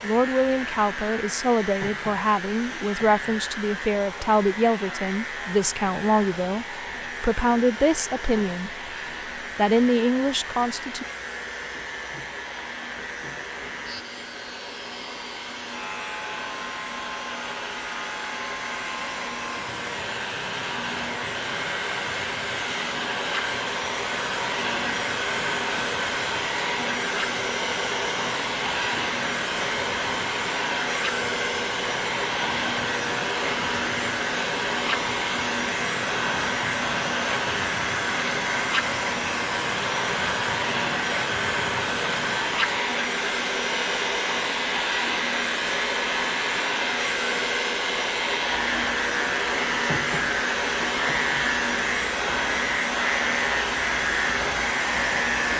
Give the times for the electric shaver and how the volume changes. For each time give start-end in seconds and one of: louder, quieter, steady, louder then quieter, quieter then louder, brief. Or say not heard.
0.0-55.5 louder.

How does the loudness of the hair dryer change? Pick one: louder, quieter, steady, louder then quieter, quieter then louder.
louder.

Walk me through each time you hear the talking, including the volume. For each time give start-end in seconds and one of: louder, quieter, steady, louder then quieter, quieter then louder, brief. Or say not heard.
0.0-8.7 steady
9.6-11.1 brief.